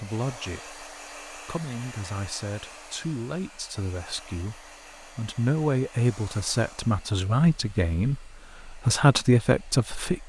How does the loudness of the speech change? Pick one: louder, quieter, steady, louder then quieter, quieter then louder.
louder.